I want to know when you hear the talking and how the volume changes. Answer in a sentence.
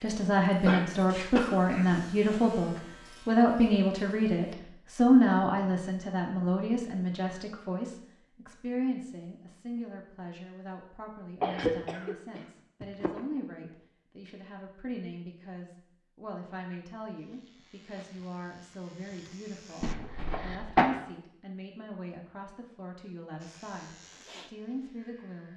The talking can be heard from 0.0 to 25.5 s, getting quieter.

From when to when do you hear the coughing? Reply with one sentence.
The coughing can be heard from 0.7 to 2.0 s, from 11.4 to 13.2 s and from 19.8 to 20.9 s.